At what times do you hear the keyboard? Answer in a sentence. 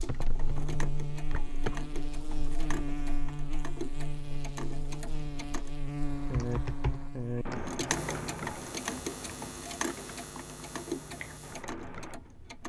You can hear the keyboard from 0.0 to 1.8 s and from 6.0 to 12.2 s.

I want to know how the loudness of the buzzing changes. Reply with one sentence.
The loudness of the buzzing goes down.